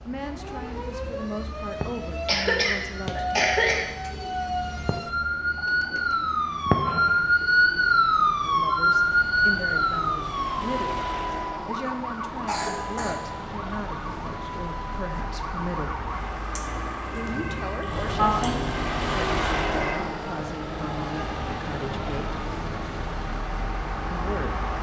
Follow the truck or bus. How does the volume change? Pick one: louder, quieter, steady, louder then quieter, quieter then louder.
louder.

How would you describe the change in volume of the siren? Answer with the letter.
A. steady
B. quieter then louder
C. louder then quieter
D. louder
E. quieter
C.